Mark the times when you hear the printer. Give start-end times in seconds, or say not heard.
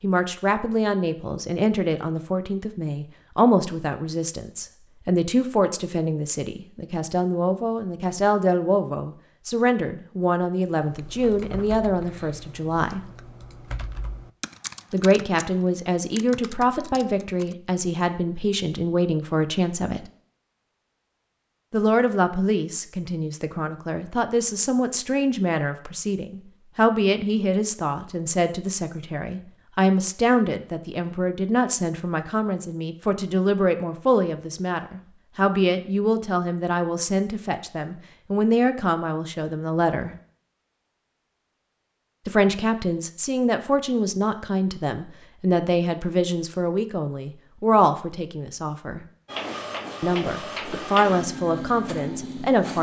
49.2-52.7.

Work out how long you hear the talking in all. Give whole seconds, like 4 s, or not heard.
46 s.